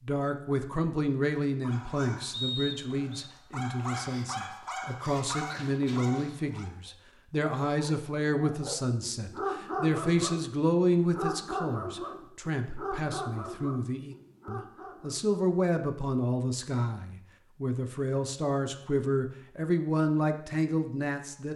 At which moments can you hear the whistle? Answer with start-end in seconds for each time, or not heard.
2.3-3.3.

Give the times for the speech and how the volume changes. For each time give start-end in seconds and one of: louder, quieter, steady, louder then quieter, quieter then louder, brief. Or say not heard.
0.0-21.5 steady.